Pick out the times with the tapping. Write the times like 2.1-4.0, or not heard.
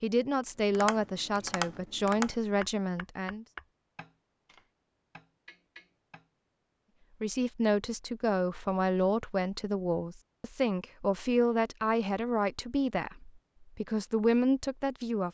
0.7-6.2.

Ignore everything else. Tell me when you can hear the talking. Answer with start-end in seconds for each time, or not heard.
0.0-3.5, 7.2-15.2.